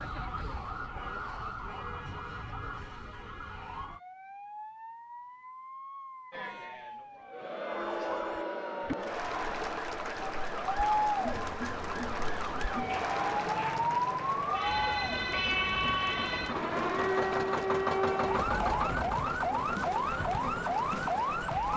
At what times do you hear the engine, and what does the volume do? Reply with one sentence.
The engine can be heard from 14.3 to 21.7 s, getting louder then quieter.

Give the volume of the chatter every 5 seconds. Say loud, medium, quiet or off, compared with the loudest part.
off, loud, loud, medium, medium.